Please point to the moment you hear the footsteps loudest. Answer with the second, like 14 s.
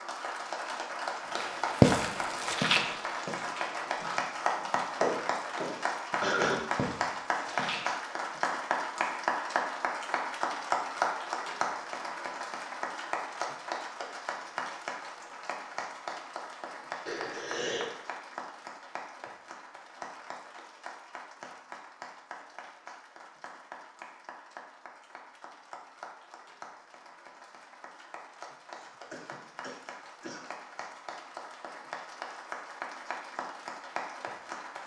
2 s.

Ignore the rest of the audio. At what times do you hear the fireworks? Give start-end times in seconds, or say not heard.
not heard.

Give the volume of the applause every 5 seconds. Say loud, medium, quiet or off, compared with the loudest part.
loud, loud, loud, medium, quiet, quiet, medium.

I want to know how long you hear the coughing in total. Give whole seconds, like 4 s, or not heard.
3 s.